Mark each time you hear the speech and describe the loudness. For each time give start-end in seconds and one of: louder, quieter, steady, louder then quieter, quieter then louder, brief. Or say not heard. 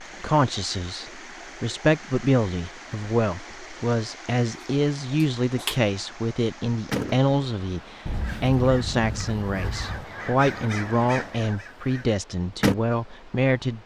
0.2-13.8 steady.